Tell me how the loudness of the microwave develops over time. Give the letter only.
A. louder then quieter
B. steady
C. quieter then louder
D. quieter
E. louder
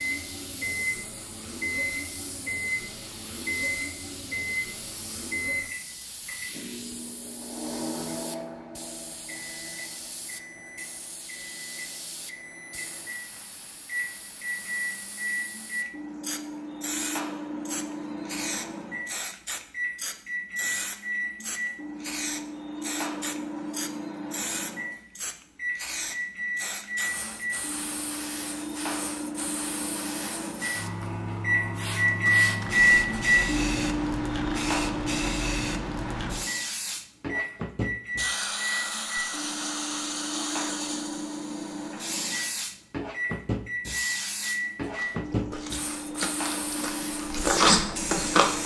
A.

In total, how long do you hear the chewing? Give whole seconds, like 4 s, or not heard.
4 s.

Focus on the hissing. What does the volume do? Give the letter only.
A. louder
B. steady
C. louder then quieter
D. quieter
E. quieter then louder
A.